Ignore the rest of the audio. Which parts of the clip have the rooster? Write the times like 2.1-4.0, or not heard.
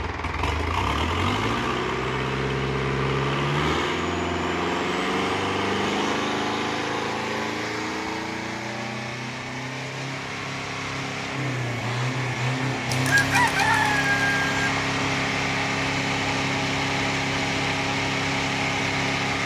12.8-14.7.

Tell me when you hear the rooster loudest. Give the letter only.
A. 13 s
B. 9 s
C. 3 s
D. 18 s
A.